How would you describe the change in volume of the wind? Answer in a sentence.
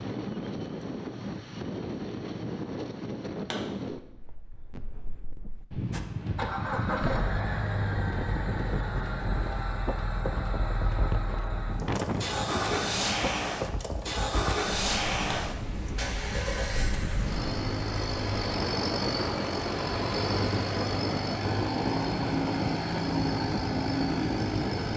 The loudness of the wind stays about the same.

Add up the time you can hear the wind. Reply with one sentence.
The wind can be heard for 25 seconds in total.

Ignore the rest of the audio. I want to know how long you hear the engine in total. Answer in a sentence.
The engine can be heard for 19 seconds in total.